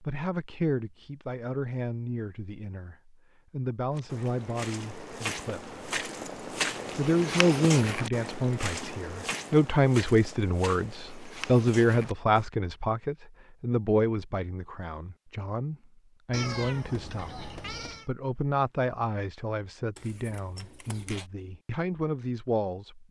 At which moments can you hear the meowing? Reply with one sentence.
You can hear the meowing from 16.3 to 18.1 s.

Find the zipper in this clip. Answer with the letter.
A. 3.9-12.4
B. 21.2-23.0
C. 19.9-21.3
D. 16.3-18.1
C.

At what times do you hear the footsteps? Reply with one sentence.
The footsteps can be heard from 3.9 to 12.4 s.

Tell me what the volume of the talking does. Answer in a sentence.
The volume of the talking goes up, then down.